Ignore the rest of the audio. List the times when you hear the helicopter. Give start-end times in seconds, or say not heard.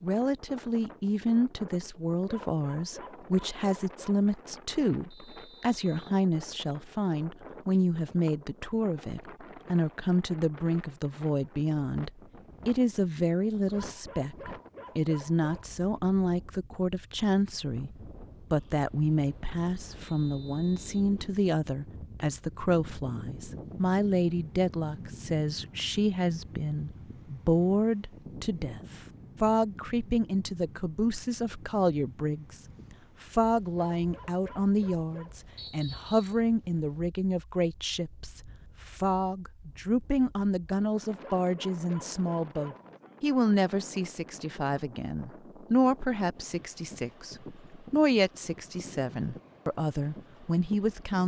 not heard.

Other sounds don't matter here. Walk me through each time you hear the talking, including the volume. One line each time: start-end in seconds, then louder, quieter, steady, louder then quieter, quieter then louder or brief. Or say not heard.
0.0-51.2 steady.